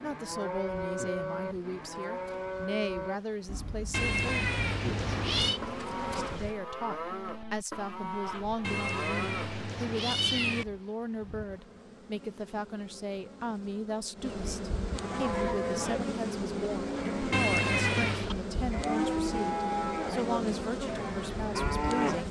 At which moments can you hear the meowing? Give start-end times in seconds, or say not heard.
3.9-5.6, 8.6-10.7, 17.3-18.3.